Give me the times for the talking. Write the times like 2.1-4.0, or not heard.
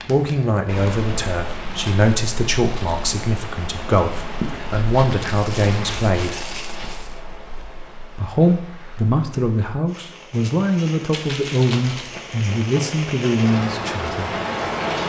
0.1-6.4, 8.2-14.3.